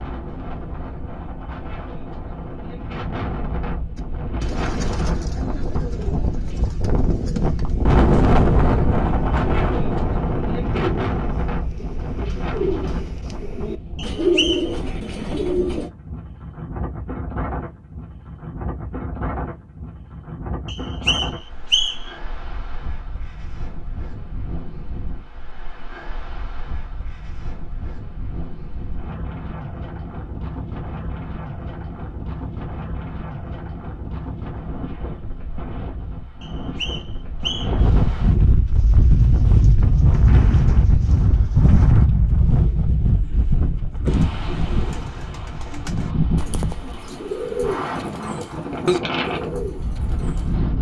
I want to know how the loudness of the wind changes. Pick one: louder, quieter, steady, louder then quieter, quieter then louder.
quieter then louder.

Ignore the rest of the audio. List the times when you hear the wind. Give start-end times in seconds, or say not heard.
0.0-50.7.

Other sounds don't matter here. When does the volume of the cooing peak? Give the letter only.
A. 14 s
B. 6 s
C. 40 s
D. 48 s
A.